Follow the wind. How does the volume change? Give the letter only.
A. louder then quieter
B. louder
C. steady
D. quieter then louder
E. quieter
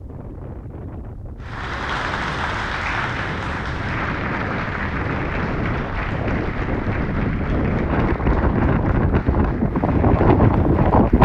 B.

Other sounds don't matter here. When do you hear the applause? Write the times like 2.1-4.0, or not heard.
1.4-11.2.